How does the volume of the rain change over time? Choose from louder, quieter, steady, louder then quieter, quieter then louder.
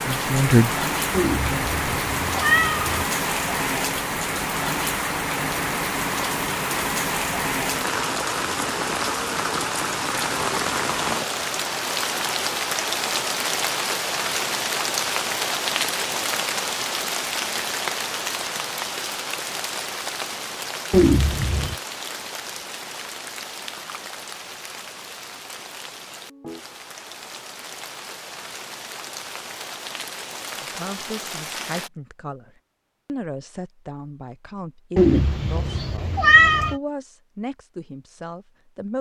quieter.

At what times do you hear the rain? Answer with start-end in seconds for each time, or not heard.
0.0-31.9.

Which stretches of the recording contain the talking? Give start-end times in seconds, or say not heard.
0.0-1.9, 30.6-38.9.